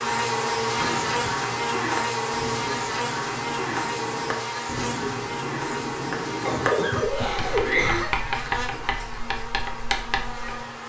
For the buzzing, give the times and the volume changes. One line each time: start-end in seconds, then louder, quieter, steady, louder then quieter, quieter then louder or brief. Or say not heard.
0.0-10.8 quieter.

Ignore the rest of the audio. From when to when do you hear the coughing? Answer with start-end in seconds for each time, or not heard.
0.8-1.4, 6.3-8.1.